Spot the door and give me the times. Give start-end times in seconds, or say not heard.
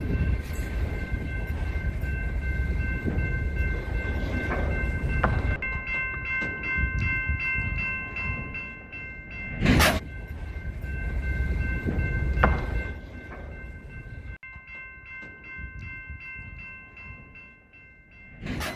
5.0-6.2, 12.2-12.8.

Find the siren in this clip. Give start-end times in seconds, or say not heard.
not heard.